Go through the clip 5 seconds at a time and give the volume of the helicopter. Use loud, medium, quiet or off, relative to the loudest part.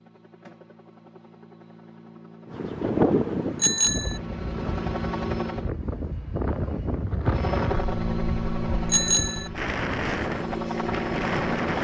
medium, loud, loud.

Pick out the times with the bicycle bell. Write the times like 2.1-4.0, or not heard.
3.6-4.2, 8.9-9.5.